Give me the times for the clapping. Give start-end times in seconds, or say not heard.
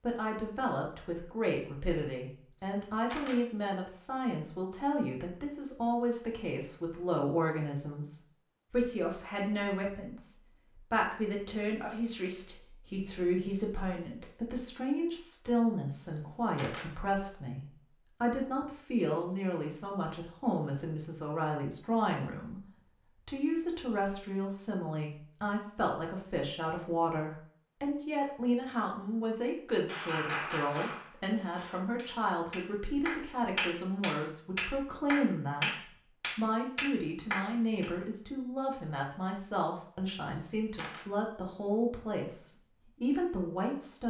29.9-37.9.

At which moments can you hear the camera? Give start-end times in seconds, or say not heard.
2.5-3.4, 16.1-16.9, 40.2-41.0.